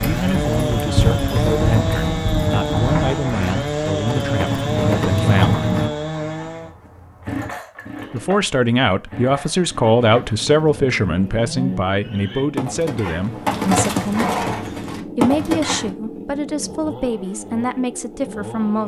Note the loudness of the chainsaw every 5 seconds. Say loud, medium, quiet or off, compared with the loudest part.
loud, medium, medium, medium.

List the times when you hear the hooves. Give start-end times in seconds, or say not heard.
0.0-5.9, 10.1-15.9.